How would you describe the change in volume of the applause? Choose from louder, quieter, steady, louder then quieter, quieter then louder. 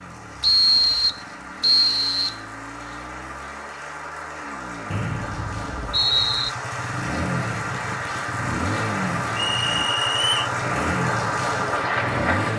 louder.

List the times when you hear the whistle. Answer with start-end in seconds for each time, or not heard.
0.4-2.4, 4.9-6.5, 9.3-10.5.